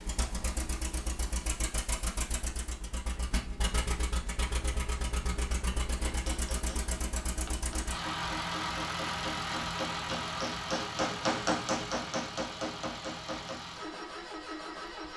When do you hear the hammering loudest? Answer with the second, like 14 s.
11 s.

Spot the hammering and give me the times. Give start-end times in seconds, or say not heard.
6.0-13.6.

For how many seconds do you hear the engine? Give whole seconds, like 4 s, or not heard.
15 s.